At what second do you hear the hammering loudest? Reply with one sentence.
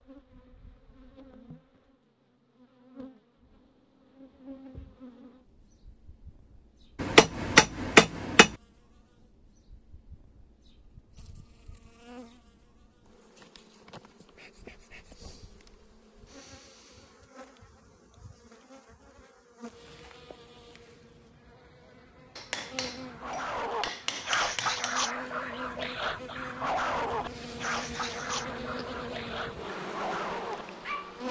The loudest moment of the hammering is at 8 seconds.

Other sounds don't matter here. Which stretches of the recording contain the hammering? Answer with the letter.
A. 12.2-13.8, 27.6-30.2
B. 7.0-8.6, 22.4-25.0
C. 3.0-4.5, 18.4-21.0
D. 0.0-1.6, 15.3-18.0
B.